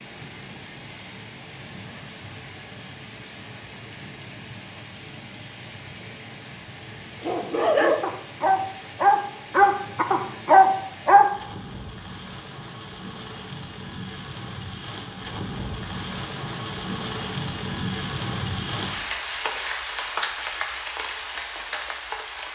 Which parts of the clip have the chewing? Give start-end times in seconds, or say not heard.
not heard.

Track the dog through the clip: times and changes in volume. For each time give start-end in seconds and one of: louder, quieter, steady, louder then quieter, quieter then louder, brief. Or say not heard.
7.2-11.2 louder.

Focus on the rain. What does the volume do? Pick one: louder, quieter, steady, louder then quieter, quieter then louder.
louder.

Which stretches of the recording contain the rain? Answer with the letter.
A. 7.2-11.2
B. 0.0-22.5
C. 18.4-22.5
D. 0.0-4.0
B.